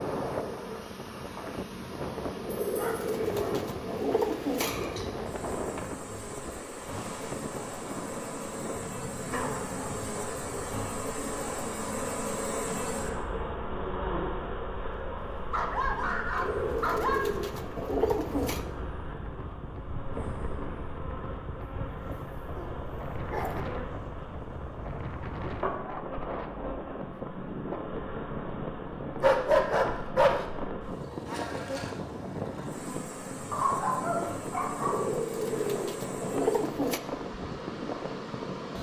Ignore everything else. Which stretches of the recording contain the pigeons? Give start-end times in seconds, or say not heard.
2.5-5.0, 16.4-18.6, 34.8-37.0.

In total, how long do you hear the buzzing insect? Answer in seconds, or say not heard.
39 s.